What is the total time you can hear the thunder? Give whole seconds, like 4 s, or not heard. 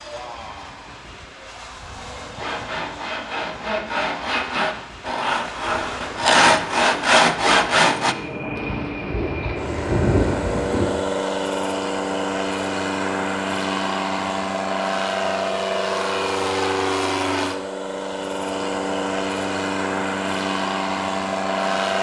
2 s.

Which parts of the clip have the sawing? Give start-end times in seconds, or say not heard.
2.4-8.2.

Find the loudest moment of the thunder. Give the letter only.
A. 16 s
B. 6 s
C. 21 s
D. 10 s
D.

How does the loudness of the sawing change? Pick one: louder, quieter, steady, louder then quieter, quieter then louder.
louder.